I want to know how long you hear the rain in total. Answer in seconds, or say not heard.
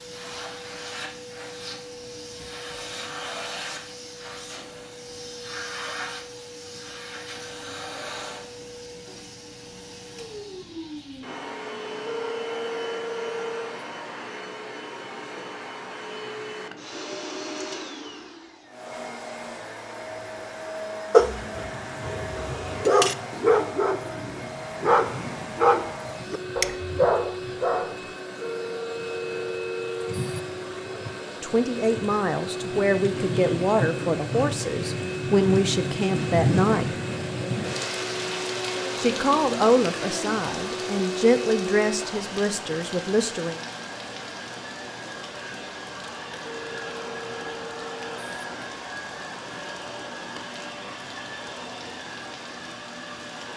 32 s.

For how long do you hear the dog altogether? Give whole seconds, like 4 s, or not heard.
7 s.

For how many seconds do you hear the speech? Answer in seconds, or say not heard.
10 s.